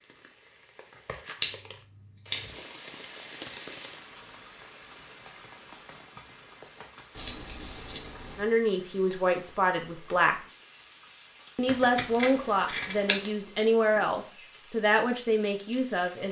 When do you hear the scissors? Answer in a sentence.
You can hear the scissors from 1.4 to 2.5 s, from 7.2 to 8.4 s and from 11.7 to 13.3 s.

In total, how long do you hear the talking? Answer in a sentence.
You can hear the talking for 7 seconds altogether.